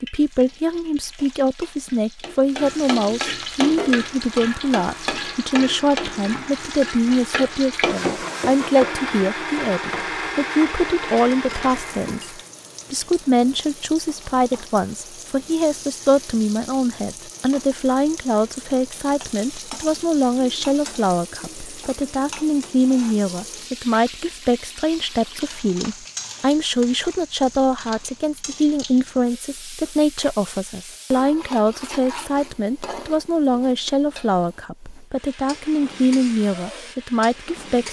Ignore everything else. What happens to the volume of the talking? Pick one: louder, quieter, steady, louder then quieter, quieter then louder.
steady.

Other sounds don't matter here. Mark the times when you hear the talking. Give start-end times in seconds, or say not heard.
0.0-37.8.